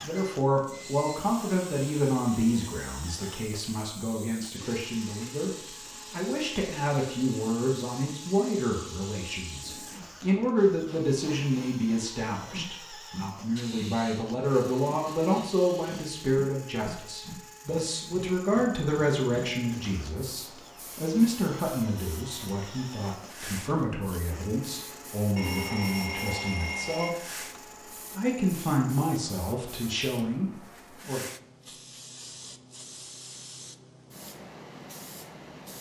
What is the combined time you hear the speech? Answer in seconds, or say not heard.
30 s.